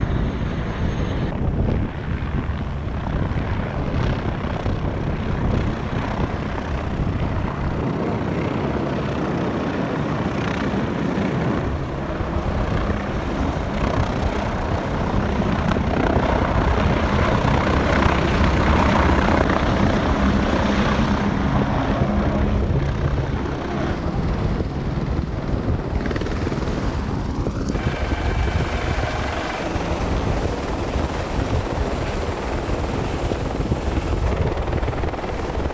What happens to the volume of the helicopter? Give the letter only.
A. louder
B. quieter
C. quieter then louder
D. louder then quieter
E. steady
D.